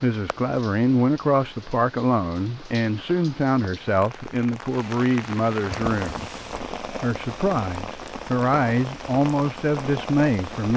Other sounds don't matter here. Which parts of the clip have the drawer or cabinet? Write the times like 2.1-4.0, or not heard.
5.7-6.7.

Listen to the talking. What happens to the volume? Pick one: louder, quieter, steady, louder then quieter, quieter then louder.
steady.